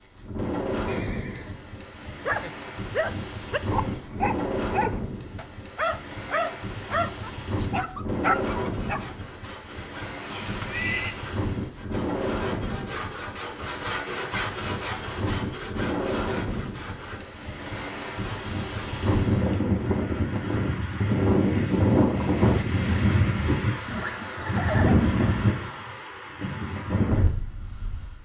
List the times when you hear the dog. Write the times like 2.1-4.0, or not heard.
2.2-9.1.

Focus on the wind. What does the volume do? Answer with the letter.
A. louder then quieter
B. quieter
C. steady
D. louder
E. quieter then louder
D.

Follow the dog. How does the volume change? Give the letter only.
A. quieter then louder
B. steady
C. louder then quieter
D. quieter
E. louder
B.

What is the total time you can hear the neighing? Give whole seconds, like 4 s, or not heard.
3 s.